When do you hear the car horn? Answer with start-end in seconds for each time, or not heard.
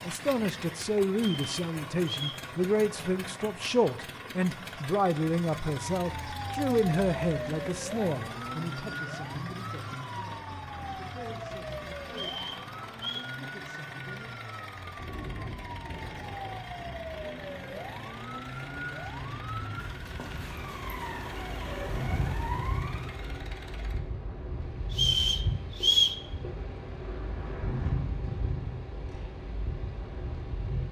not heard.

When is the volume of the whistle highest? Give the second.
26 s.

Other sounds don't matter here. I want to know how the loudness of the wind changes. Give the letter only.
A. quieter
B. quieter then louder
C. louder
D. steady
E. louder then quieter
C.